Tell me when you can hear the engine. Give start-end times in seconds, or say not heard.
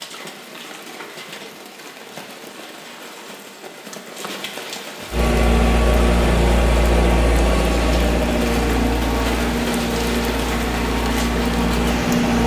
5.1-12.4.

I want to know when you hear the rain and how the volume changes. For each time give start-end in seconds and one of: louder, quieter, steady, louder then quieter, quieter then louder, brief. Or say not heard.
0.0-12.4 louder.